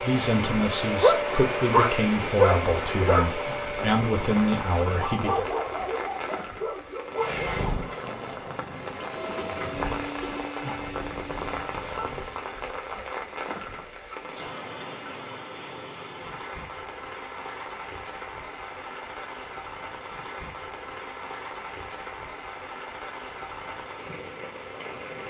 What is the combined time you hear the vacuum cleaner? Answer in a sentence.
The vacuum cleaner can be heard for 9 seconds in total.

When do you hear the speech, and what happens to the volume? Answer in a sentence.
You can hear the speech from 0.0 to 5.5 s, at a steady volume.